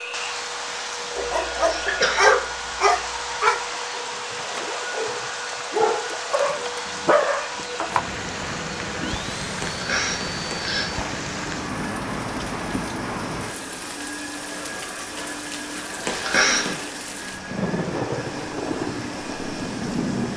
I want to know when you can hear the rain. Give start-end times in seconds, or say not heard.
0.0-20.3.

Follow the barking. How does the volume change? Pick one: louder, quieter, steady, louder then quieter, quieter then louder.
quieter then louder.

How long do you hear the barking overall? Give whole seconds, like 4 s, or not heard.
7 s.